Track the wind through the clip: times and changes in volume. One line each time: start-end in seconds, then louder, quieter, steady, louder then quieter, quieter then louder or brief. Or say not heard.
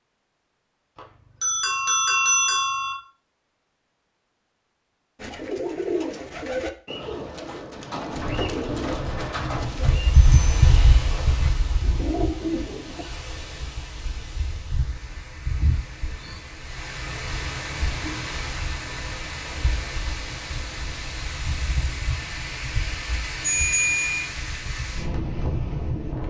8.1-26.2 quieter then louder.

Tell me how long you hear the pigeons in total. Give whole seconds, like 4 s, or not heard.
8 s.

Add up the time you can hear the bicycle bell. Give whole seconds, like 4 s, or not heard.
3 s.